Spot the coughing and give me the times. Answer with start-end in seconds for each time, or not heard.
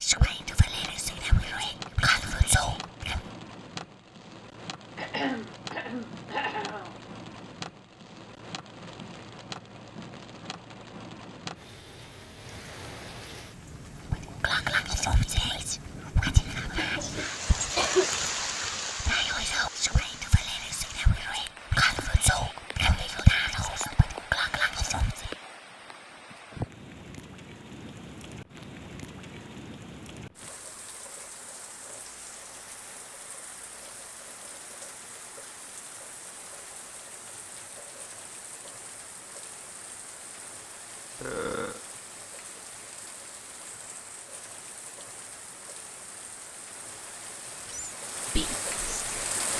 5.0-7.0, 16.8-18.1, 41.1-41.8.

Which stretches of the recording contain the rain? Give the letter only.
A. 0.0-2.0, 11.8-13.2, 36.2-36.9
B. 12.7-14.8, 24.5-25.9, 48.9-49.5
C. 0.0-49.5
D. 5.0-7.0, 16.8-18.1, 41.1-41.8
C.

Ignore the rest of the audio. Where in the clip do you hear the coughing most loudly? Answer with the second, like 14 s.
18 s.